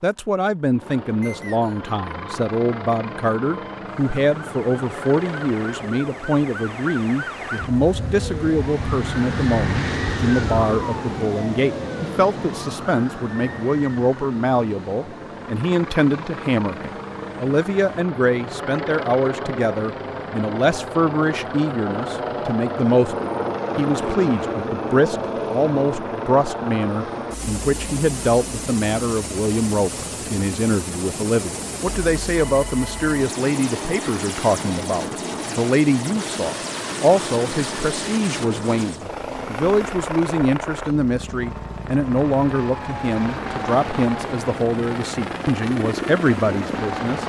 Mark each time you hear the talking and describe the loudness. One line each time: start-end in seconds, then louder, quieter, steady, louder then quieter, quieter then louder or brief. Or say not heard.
0.0-47.2 steady.